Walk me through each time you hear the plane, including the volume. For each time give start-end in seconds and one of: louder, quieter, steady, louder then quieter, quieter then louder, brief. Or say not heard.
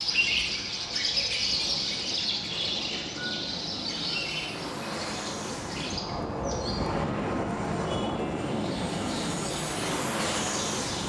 0.0-11.0 louder.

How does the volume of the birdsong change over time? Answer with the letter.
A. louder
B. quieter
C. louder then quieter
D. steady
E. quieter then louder
B.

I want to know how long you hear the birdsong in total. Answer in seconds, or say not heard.
11 s.